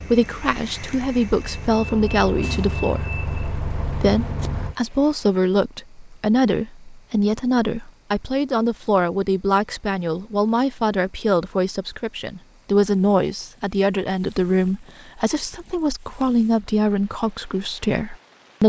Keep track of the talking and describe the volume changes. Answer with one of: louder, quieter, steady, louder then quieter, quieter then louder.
steady.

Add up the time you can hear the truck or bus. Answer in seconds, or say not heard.
5 s.